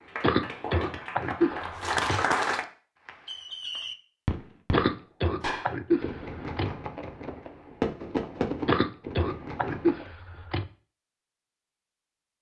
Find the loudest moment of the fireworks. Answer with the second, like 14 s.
8 s.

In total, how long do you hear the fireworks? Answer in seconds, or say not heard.
7 s.